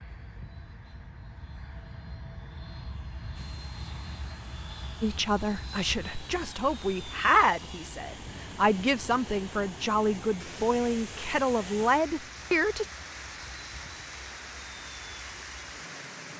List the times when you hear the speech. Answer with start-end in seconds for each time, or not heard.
5.0-12.8.